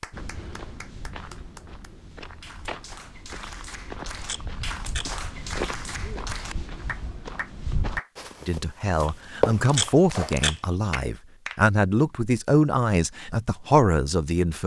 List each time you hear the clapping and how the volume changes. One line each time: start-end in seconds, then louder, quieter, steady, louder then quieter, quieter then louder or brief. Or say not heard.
0.0-8.1 louder
10.1-11.6 brief.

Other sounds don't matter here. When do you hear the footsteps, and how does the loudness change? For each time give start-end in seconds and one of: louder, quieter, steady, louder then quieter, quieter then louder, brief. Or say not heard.
0.1-10.5 louder.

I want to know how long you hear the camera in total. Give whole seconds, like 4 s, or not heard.
3 s.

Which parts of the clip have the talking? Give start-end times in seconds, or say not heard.
8.4-14.6.